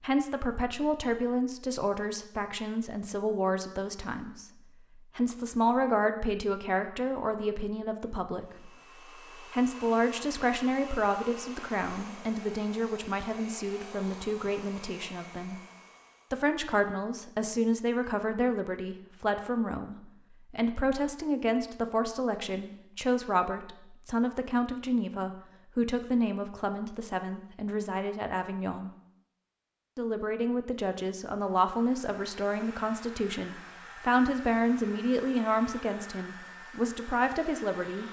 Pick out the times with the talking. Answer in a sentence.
The talking can be heard from 0.0 to 8.7 s, from 9.5 to 15.6 s, from 16.3 to 28.9 s and from 29.9 to 38.0 s.